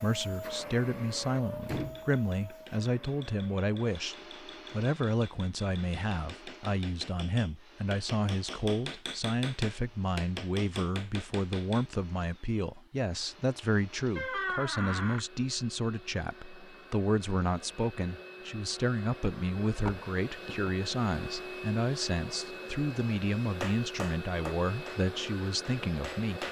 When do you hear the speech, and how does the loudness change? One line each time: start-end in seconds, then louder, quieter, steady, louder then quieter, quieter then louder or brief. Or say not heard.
0.0-26.4 steady.